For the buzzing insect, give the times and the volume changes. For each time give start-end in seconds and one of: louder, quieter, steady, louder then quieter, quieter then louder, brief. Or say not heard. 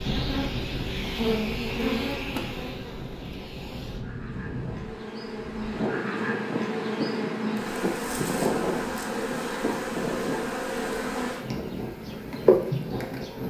0.0-13.4 quieter then louder.